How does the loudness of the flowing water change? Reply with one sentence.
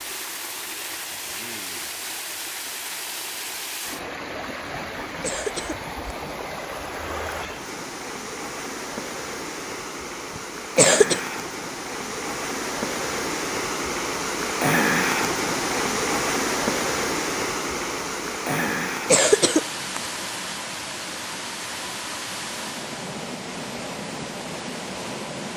The loudness of the flowing water goes up, then down.